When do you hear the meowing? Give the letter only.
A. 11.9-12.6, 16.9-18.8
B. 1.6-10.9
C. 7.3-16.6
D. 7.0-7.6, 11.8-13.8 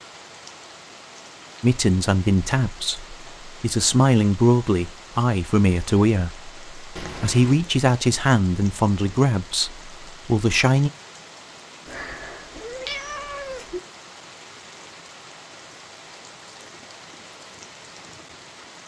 D.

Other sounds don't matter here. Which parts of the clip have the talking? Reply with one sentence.
You can hear the talking from 1.6 to 10.9 s.